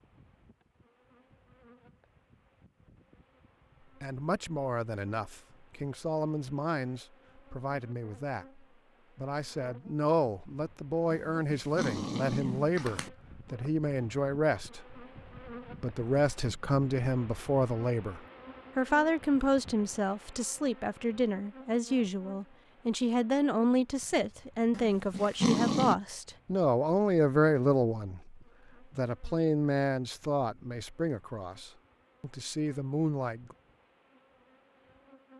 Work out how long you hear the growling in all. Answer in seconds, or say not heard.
3 s.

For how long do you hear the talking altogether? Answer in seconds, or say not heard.
29 s.